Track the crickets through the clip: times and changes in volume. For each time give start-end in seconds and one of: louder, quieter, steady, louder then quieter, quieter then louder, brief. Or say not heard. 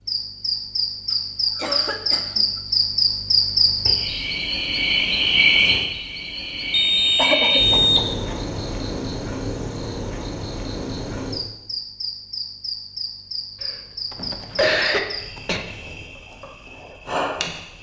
0.1-17.7 quieter.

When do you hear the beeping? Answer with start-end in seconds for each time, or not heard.
6.7-8.1.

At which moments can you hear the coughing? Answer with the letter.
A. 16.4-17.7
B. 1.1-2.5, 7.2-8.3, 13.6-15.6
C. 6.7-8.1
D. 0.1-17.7
B.